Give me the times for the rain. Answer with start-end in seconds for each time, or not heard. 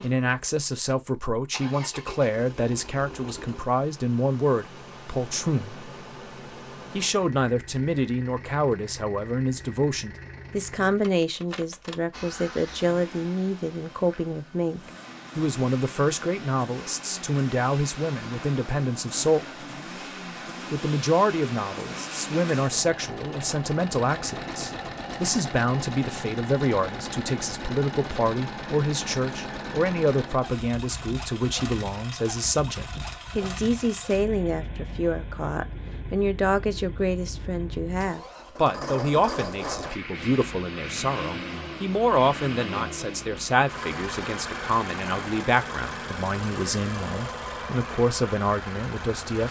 not heard.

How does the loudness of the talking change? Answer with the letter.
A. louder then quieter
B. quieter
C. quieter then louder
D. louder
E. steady
E.